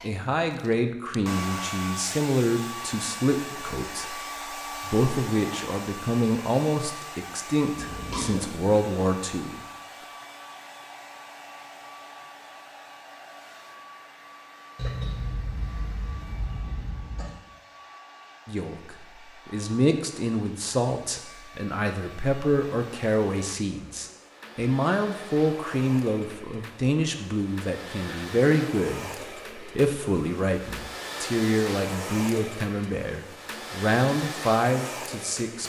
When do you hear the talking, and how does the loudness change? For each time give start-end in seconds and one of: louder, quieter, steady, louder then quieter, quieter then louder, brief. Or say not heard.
0.0-9.7 steady
18.4-35.6 steady.